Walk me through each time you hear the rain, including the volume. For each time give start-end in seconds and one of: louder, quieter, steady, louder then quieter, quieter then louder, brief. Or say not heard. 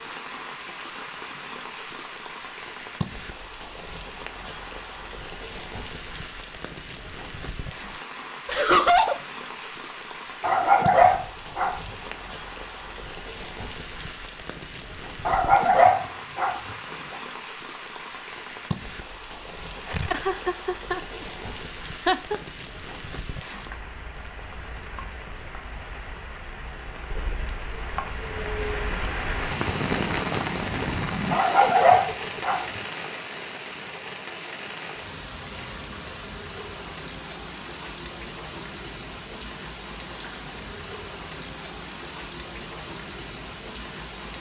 0.0-44.3 louder then quieter.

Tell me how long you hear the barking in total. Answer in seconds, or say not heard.
4 s.